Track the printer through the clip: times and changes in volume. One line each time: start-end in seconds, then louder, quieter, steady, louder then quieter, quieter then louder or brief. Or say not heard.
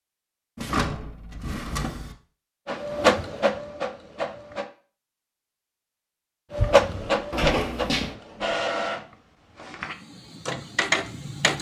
2.6-4.7 brief
6.5-11.5 quieter then louder.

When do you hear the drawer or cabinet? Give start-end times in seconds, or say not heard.
0.6-2.1, 7.3-8.2.